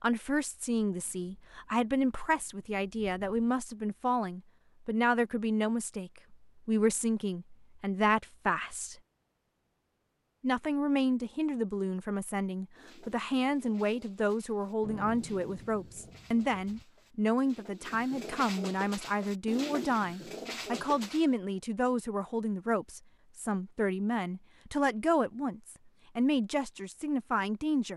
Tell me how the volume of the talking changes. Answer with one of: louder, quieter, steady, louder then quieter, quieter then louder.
steady.